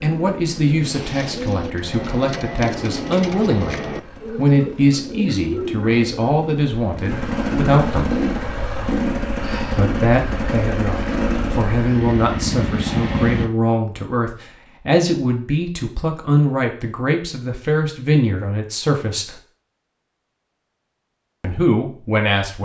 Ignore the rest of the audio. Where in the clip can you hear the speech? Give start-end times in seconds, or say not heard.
0.0-8.2, 9.8-19.4, 21.4-22.6.